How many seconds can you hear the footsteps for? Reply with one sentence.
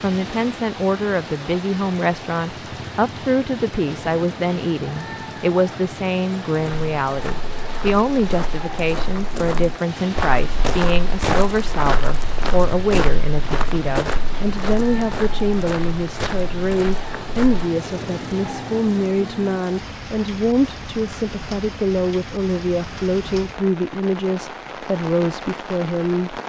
The footsteps can be heard for 11 seconds in total.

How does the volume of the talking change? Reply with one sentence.
The volume of the talking stays about the same.